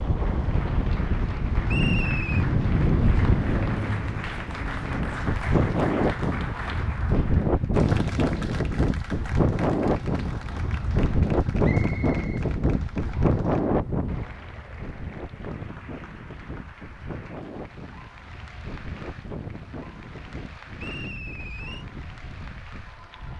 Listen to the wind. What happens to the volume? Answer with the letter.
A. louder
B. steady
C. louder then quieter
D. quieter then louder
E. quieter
E.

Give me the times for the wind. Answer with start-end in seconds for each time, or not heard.
0.0-23.3.